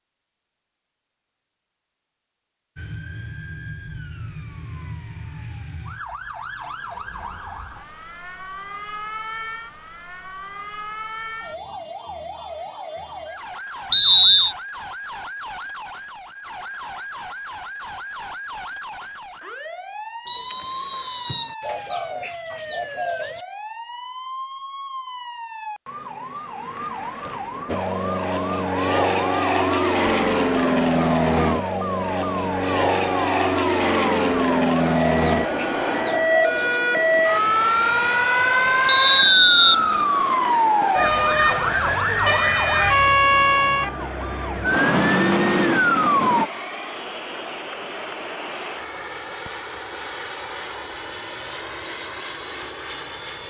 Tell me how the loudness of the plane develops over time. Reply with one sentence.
The loudness of the plane goes down.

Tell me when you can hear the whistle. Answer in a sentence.
The whistle can be heard from 13.9 to 14.6 s, from 20.2 to 21.6 s and from 38.9 to 39.8 s.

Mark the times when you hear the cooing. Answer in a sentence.
The cooing can be heard from 21.6 to 23.4 s and from 35.0 to 36.8 s.